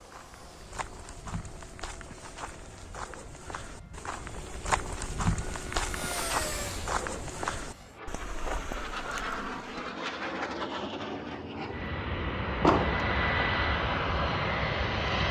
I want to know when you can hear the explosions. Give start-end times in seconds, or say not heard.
12.6-13.1.